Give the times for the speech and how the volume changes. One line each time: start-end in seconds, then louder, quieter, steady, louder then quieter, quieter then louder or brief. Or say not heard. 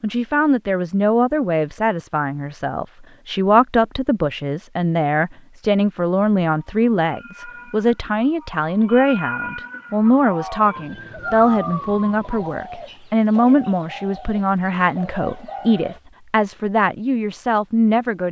0.0-18.2 steady.